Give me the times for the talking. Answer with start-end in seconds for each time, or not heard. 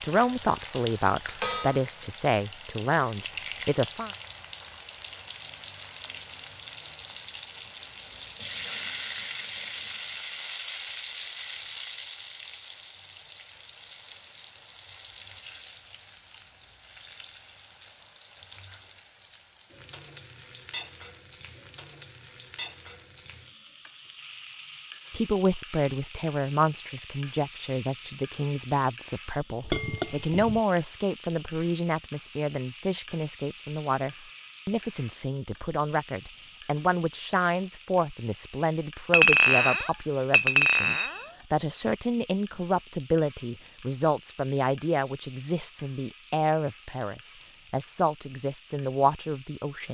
0.0-4.1, 25.1-49.9.